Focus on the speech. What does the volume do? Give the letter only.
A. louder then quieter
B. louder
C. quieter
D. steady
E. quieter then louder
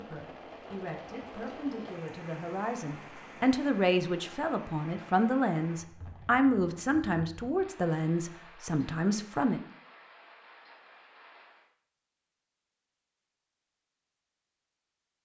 B.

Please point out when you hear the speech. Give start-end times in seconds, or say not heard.
0.0-9.6.